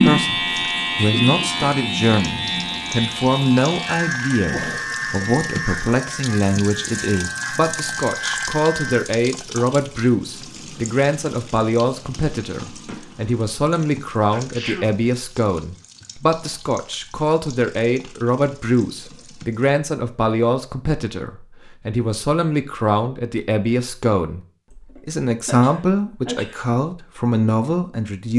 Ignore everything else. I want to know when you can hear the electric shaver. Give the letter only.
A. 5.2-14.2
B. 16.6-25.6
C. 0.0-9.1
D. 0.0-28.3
C.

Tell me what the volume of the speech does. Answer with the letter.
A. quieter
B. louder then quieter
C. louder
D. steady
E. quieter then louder
D.